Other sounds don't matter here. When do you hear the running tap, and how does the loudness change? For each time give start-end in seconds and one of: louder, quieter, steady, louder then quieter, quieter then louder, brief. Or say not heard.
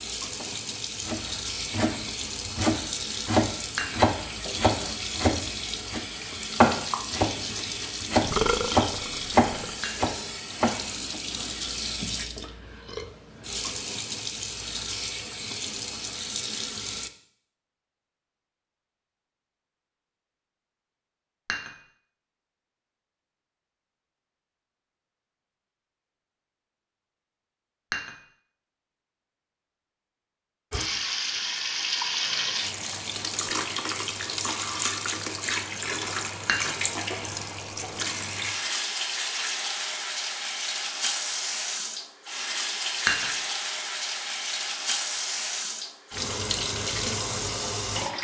0.0-17.1 steady
30.7-48.1 steady.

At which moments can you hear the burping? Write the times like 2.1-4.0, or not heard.
8.2-9.7.